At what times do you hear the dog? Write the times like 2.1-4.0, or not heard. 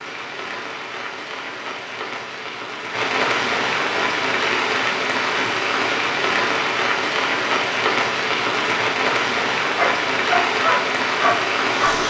9.8-12.0.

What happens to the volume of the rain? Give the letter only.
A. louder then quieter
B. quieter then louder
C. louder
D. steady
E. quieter
C.